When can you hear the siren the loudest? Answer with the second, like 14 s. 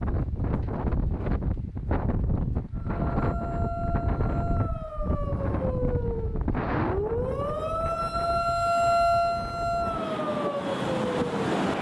9 s.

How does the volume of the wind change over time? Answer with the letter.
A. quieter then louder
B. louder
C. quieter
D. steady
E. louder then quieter
A.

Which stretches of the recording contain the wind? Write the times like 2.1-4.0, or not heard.
0.0-11.7.